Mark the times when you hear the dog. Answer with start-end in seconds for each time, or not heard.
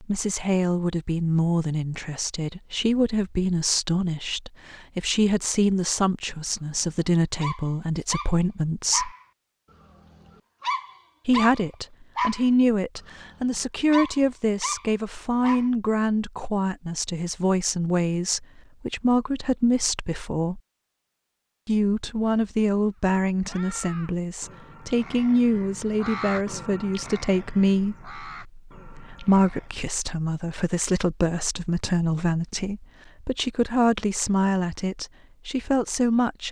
6.8-9.2, 10.2-12.5, 13.4-15.7.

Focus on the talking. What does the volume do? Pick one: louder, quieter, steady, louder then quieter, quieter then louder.
steady.